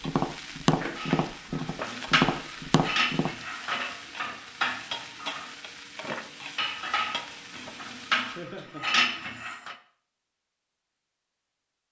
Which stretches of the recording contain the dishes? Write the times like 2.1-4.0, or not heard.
0.9-9.8.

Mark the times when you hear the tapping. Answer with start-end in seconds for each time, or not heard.
0.1-3.4.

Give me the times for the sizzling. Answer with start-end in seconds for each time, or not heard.
0.0-8.5.